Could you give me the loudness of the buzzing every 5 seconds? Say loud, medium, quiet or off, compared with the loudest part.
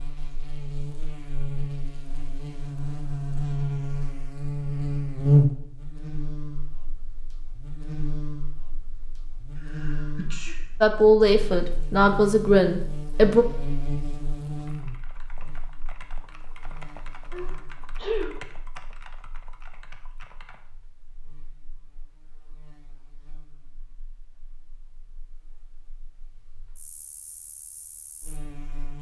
medium, loud, medium, quiet, quiet, quiet.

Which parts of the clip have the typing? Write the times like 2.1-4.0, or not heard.
14.6-20.6.